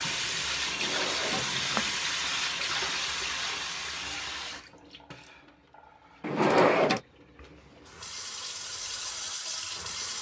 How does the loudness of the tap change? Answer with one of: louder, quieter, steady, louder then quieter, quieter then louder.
quieter then louder.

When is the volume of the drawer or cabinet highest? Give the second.
7 s.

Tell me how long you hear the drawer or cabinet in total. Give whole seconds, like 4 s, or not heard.
2 s.